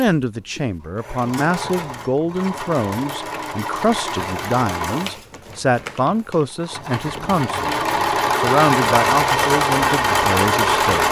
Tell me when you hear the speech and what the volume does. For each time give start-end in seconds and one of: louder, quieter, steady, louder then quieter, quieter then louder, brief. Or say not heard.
0.0-7.8 steady
8.3-11.0 brief.